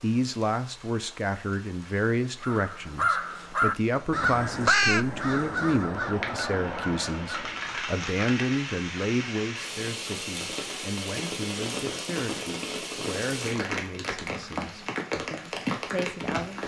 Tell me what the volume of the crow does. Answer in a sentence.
The volume of the crow goes down.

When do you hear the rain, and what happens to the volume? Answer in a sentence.
You can hear the rain from 0.0 to 16.6 s, getting louder.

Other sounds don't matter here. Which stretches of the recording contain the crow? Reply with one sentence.
You can hear the crow from 2.4 to 7.9 s.